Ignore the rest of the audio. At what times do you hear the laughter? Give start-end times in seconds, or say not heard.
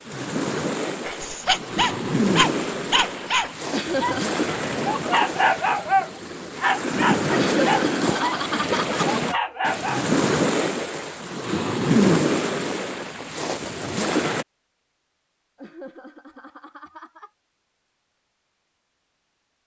3.7-4.4, 7.3-9.1, 15.6-17.3.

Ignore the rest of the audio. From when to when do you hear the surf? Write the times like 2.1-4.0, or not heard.
0.0-14.4.